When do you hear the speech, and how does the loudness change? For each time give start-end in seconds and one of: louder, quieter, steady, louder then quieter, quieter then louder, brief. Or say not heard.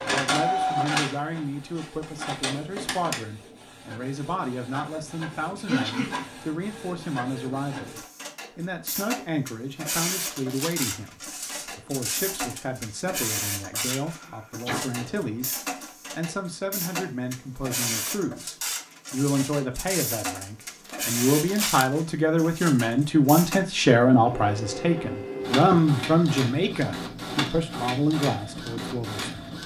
0.0-29.6 louder.